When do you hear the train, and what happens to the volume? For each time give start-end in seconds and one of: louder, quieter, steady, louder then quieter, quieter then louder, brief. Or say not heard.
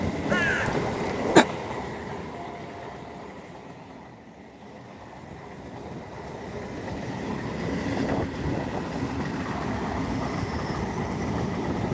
0.0-11.8 quieter then louder.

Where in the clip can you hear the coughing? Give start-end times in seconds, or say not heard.
0.3-1.4.